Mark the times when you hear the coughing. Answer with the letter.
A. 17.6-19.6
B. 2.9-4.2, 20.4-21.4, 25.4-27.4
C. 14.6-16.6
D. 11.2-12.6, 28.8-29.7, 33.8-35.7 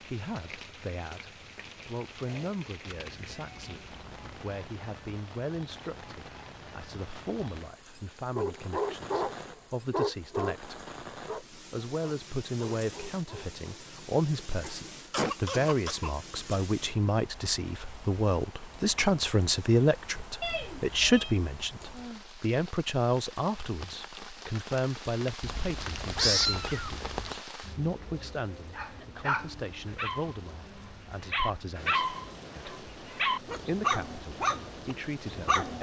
C.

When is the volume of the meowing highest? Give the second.
26 s.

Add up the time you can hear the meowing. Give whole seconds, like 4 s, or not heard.
4 s.